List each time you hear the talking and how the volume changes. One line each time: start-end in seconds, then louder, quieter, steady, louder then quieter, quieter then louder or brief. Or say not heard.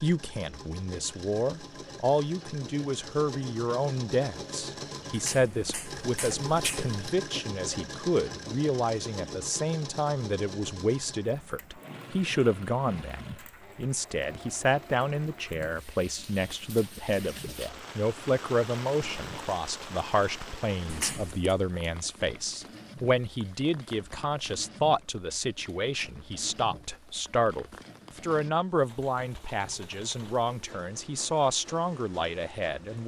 0.0-33.0 steady.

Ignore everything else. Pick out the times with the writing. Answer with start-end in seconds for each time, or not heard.
not heard.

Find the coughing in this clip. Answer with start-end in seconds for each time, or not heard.
not heard.